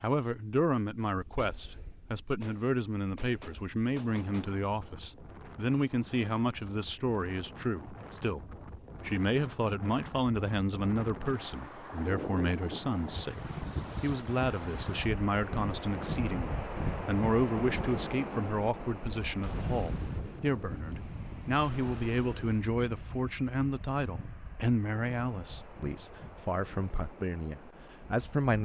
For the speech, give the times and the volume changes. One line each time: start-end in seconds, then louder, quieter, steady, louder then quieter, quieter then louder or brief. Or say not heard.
0.0-28.6 steady.